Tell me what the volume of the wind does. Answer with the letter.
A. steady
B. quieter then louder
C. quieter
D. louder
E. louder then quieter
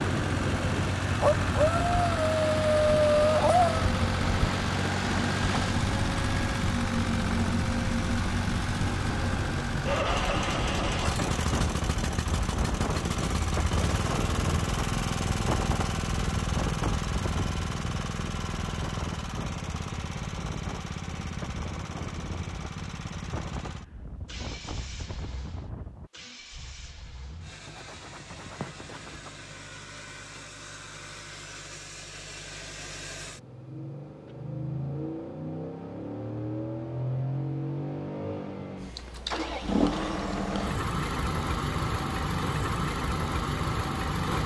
C.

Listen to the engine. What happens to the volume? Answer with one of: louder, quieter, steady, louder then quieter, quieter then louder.
quieter then louder.